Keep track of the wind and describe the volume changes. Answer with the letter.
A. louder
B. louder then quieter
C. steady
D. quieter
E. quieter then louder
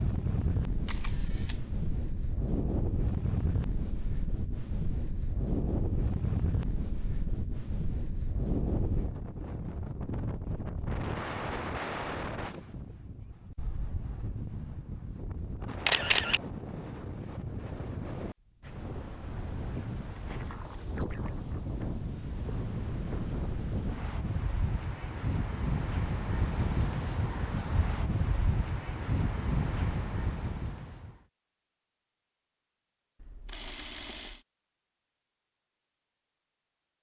E.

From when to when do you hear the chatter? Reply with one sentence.
You can't hear the chatter here.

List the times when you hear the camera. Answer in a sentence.
The camera can be heard from 0.8 to 1.6 s, from 15.8 to 16.4 s and from 33.2 to 34.5 s.